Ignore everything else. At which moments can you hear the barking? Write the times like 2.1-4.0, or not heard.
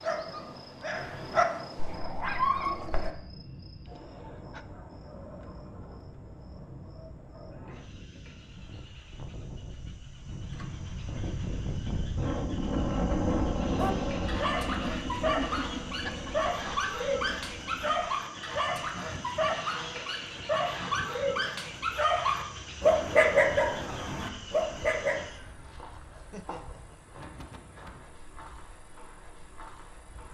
0.0-3.1, 13.8-25.3.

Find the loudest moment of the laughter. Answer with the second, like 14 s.
16 s.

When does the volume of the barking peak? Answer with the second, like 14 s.
23 s.